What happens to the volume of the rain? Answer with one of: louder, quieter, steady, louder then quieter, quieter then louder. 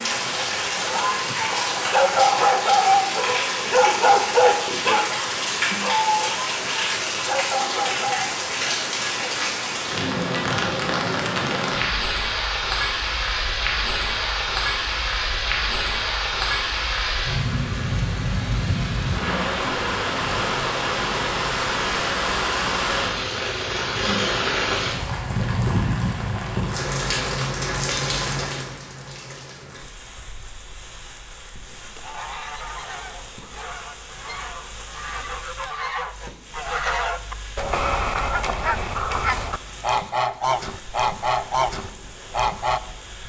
quieter.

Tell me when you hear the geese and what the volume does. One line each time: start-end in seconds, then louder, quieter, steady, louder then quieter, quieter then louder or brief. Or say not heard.
31.8-42.8 louder.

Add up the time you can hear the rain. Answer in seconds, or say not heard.
43 s.